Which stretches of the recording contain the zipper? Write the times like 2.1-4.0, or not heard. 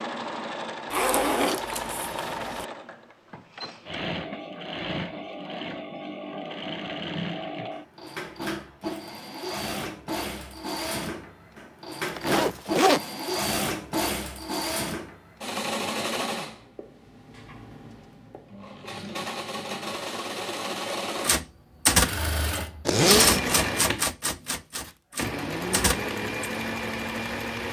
0.9-2.6, 12.1-13.0, 22.9-23.6.